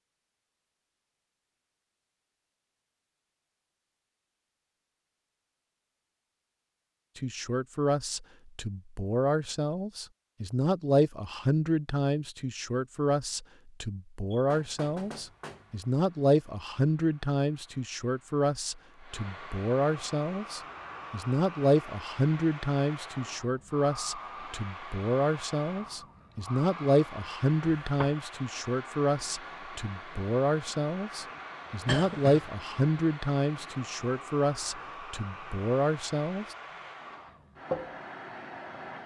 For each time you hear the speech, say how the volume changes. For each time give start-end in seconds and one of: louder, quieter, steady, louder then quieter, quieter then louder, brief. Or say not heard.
7.2-36.5 steady.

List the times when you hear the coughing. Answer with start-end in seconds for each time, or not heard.
31.9-32.5.